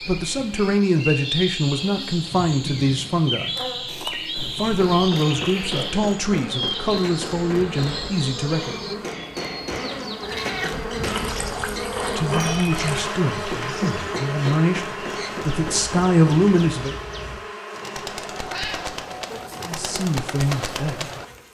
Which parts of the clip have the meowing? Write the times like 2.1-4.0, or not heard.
3.9-4.5, 10.2-10.8, 18.3-19.7.